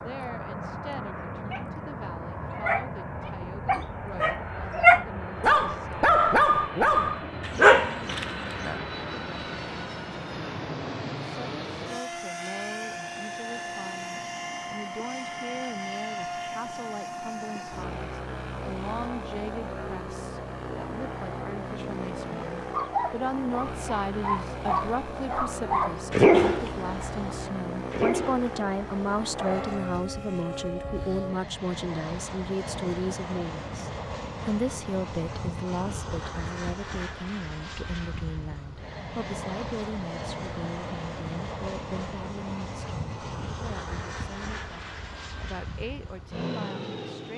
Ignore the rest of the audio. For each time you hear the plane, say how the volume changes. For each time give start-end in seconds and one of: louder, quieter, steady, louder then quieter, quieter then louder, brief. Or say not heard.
0.0-47.3 steady.